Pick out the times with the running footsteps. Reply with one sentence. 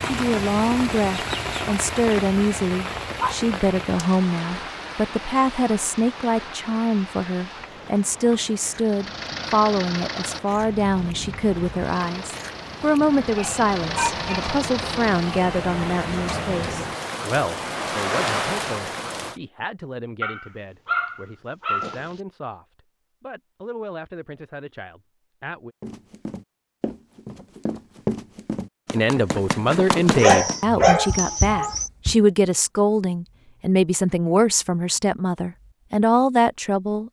The running footsteps can be heard from 25.8 to 32.2 s.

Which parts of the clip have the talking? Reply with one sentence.
The talking can be heard from 0.1 to 25.8 s and from 28.9 to 37.0 s.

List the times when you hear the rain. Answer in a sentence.
The rain can be heard from 0.0 to 19.4 s.